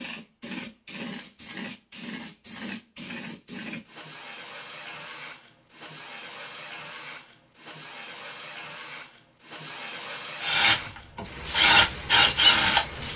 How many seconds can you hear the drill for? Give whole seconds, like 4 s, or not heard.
3 s.